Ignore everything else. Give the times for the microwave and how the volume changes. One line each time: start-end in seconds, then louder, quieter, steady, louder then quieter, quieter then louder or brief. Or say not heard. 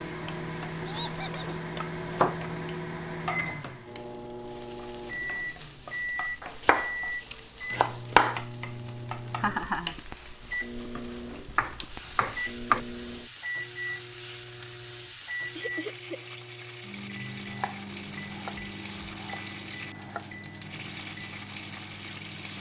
0.0-22.5 quieter.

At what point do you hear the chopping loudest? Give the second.
8 s.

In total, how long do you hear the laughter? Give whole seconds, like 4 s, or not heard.
2 s.